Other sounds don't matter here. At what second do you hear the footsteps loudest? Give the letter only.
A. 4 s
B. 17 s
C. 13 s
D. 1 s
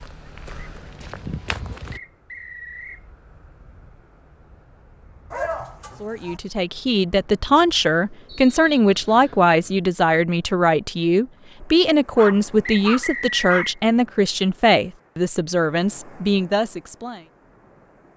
D.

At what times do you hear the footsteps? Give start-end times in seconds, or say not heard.
0.0-2.0.